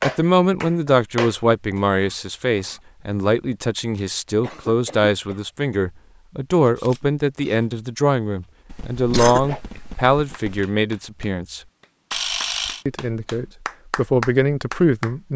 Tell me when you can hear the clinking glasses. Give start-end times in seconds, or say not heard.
not heard.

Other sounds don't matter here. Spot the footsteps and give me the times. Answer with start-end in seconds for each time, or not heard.
not heard.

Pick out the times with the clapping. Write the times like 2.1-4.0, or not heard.
0.0-1.8, 9.8-15.2.